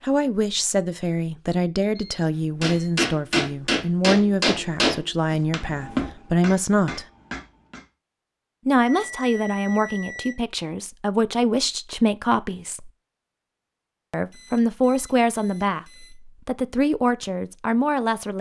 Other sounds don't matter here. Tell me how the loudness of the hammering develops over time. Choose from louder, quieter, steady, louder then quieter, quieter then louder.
quieter.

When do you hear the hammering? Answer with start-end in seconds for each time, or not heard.
2.6-7.8.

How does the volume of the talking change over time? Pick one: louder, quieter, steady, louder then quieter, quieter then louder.
steady.